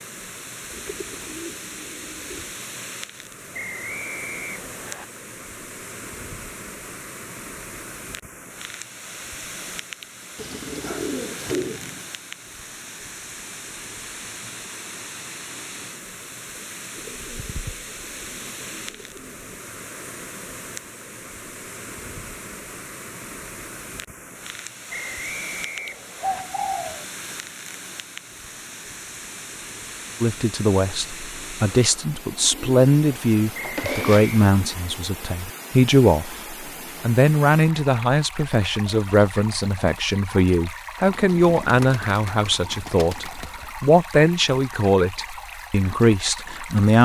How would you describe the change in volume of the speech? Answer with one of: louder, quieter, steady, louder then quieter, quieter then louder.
steady.